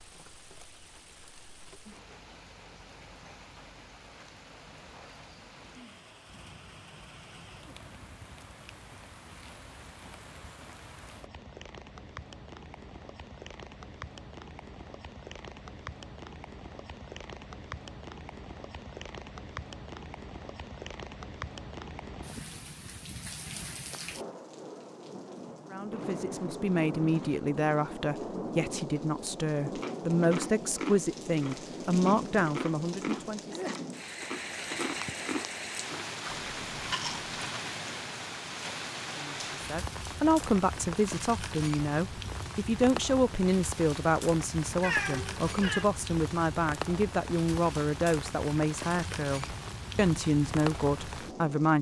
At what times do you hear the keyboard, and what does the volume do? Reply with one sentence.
You can't hear the keyboard here.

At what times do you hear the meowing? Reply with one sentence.
You can hear the meowing from 44.8 to 45.9 s.